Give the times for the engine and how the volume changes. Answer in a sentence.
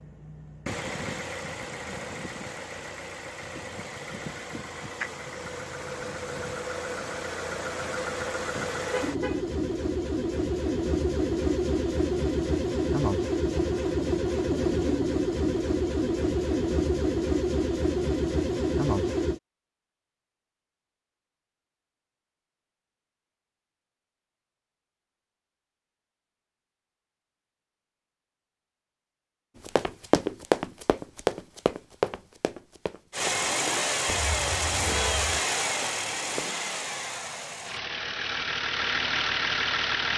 You can hear the engine from 0.0 to 19.4 s, getting louder; and from 33.1 to 40.1 s, getting quieter then louder.